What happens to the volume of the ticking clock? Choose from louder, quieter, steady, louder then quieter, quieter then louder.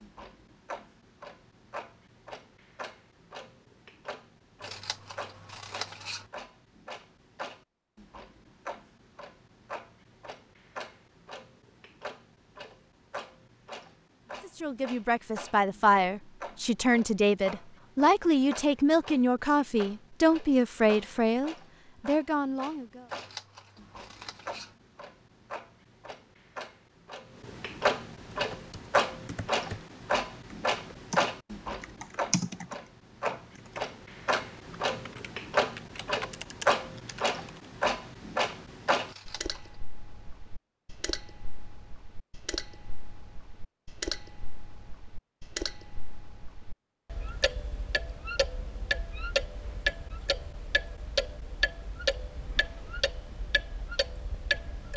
louder.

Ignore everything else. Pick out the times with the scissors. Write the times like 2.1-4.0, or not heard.
4.6-6.3, 23.1-24.8, 39.0-39.8.